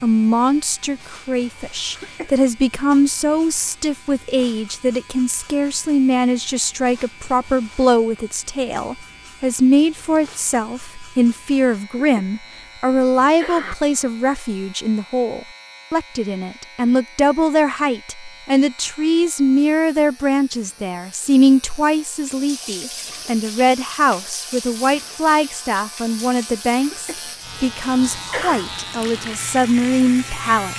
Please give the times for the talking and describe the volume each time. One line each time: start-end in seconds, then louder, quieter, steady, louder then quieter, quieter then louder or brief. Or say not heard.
0.0-30.7 steady.